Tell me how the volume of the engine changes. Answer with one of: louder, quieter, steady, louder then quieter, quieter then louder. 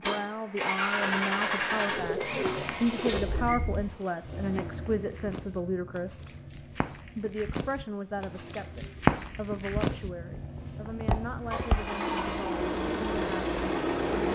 quieter then louder.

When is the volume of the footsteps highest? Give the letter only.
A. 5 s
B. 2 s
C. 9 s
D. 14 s
C.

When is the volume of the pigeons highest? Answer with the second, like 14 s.
2 s.